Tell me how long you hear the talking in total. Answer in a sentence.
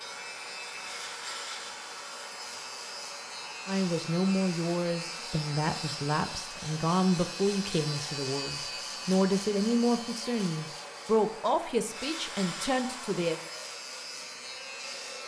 You can hear the talking for 10 seconds altogether.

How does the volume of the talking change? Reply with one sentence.
The volume of the talking stays about the same.